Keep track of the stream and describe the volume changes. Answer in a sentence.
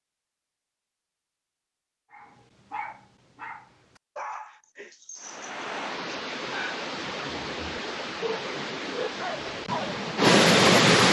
The volume of the stream goes up.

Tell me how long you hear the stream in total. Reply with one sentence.
You can hear the stream for 6 seconds altogether.